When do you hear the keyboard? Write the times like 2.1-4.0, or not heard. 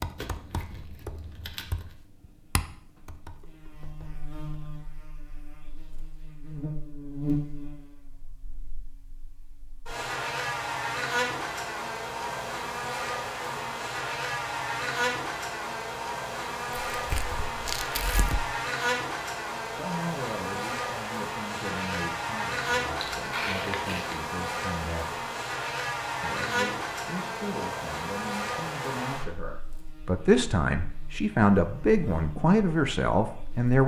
0.0-4.8.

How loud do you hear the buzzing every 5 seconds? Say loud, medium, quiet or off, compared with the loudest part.
quiet, medium, loud, loud, loud, loud, quiet.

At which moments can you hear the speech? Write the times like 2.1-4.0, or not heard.
19.7-25.2, 26.2-33.8.